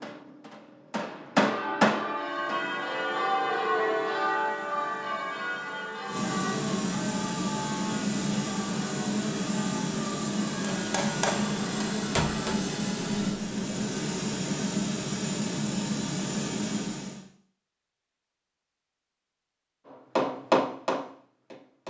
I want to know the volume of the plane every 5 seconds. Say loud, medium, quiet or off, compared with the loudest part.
quiet, loud, loud, loud, off.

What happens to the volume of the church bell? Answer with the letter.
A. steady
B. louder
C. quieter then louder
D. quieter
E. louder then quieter
D.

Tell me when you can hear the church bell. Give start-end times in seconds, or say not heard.
1.4-12.6.